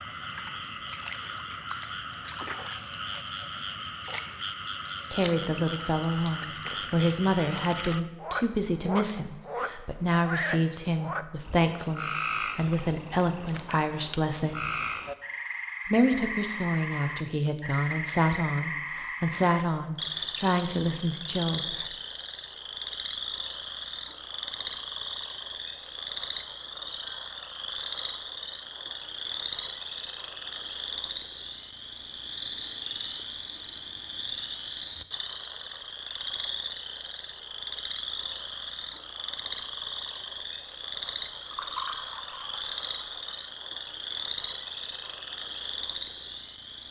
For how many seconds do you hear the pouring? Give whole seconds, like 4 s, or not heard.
2 s.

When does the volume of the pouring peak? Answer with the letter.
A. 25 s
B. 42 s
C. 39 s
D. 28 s
B.